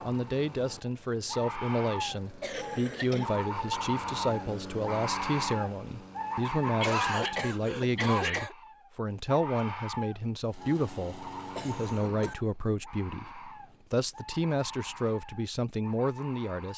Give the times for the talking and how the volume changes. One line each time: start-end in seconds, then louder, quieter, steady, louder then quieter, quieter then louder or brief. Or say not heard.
0.1-16.7 steady.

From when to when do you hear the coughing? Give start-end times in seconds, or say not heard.
2.4-3.3, 6.6-8.6, 11.6-12.3.